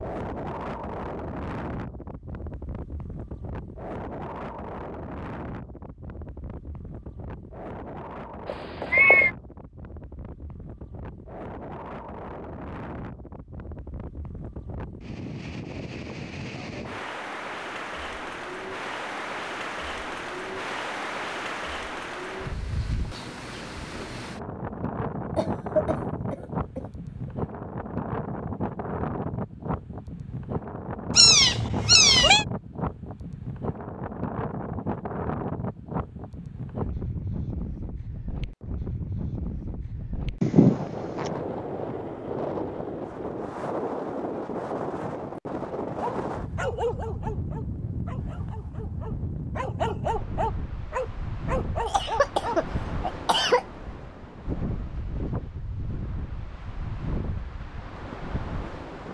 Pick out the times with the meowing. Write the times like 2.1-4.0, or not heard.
8.4-9.3, 31.1-32.5, 40.4-41.3.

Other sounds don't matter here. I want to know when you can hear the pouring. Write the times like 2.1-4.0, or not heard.
not heard.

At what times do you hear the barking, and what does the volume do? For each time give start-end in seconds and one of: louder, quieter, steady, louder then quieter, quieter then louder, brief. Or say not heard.
45.8-52.6 quieter then louder.